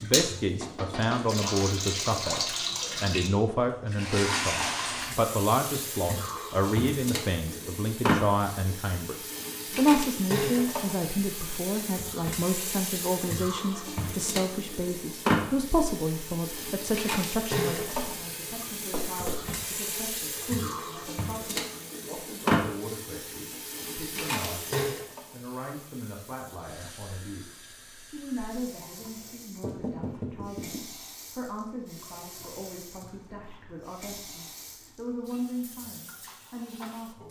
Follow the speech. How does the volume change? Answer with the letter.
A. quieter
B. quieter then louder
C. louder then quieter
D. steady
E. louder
A.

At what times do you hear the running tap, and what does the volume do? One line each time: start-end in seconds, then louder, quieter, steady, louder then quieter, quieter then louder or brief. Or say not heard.
0.0-37.2 quieter.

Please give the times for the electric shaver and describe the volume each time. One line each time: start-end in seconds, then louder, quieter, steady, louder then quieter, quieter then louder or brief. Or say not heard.
not heard.